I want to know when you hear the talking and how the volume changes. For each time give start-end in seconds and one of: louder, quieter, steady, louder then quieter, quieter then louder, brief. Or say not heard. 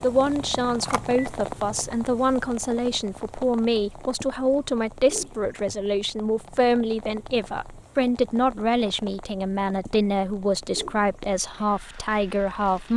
0.0-12.9 steady.